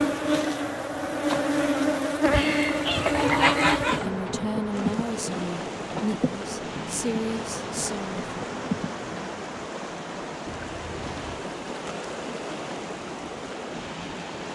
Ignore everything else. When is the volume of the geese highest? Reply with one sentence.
The loudest moment of the geese is at 4 seconds.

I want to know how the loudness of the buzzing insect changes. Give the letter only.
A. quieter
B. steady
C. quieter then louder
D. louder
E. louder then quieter
A.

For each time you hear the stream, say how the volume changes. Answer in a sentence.
You can hear the stream from 4.7 to 14.4 s, at a steady volume.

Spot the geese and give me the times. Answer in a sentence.
The geese can be heard from 2.3 to 4.0 s.